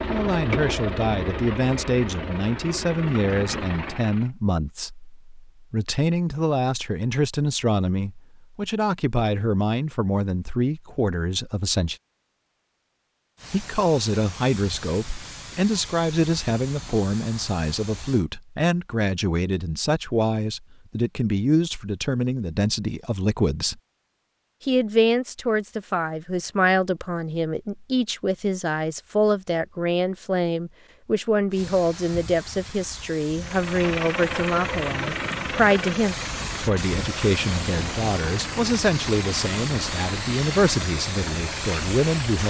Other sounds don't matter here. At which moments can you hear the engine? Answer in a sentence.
The engine can be heard from 0.0 to 4.3 s and from 33.4 to 42.4 s.